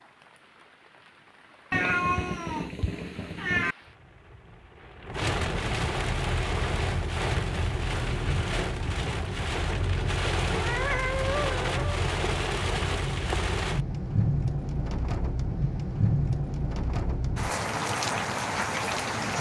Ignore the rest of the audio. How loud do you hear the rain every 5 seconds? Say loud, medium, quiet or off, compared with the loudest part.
quiet, loud, loud, loud.